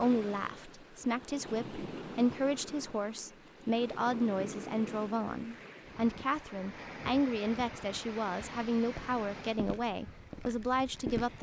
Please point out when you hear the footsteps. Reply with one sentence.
You can hear the footsteps from 8.8 to 11.3 s.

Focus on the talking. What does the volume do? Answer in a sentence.
The loudness of the talking stays about the same.